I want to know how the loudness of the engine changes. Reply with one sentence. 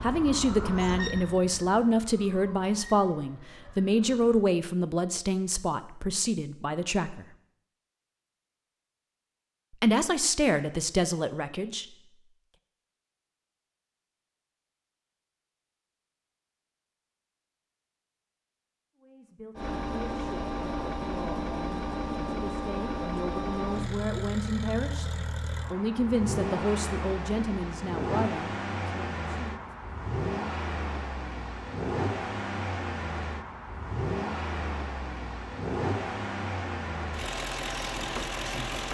The loudness of the engine stays about the same.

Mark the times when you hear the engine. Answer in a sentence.
The engine can be heard from 19.6 to 38.8 s.